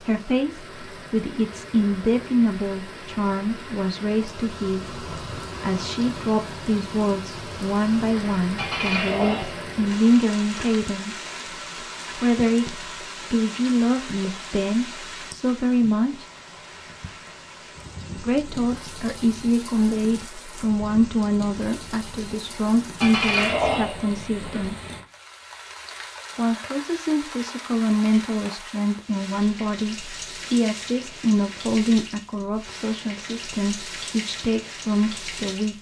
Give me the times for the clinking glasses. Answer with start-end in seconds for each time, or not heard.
8.6-10.2, 23.0-24.7.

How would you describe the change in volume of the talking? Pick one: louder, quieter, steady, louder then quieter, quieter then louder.
steady.